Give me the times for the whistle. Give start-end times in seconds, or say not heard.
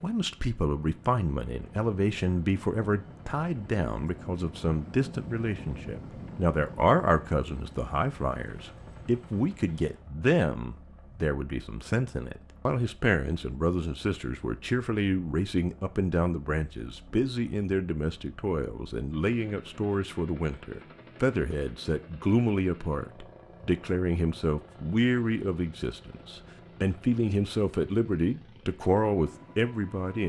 not heard.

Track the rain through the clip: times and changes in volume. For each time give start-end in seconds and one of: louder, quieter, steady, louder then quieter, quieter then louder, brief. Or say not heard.
not heard.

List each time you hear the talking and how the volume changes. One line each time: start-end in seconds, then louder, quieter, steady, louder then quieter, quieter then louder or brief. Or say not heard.
0.0-30.2 steady.